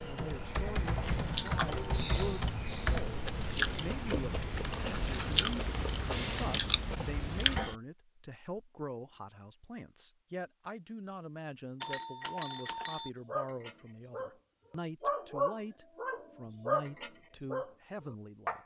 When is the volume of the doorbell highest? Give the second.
12 s.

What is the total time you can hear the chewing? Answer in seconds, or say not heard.
7 s.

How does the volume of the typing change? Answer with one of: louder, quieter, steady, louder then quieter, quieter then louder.
quieter.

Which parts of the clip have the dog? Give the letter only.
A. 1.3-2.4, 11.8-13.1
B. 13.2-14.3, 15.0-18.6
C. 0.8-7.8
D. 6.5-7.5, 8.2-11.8
B.